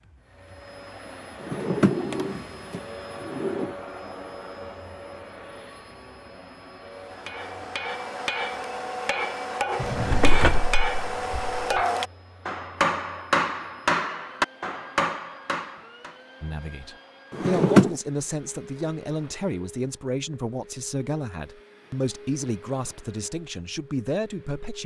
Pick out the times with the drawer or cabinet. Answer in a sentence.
The drawer or cabinet can be heard from 1.4 to 3.8 s, from 9.8 to 11.8 s and from 17.3 to 17.9 s.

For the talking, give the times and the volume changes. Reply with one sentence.
The talking can be heard from 16.4 to 24.8 s, at a steady volume.